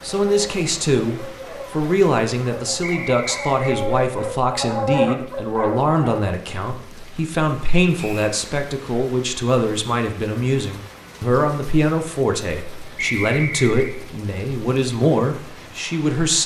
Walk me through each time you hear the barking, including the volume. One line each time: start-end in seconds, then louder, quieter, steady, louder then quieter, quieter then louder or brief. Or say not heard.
0.0-6.2 louder.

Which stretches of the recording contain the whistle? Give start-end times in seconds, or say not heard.
2.8-3.8, 8.0-8.4, 12.9-13.9.